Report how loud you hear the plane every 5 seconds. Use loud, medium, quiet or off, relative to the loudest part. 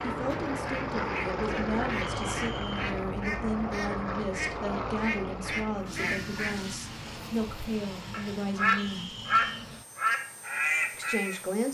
loud, medium, quiet.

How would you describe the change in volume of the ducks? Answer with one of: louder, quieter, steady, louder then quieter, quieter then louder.
louder.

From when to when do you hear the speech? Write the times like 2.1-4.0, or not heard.
0.0-9.1, 10.9-11.6.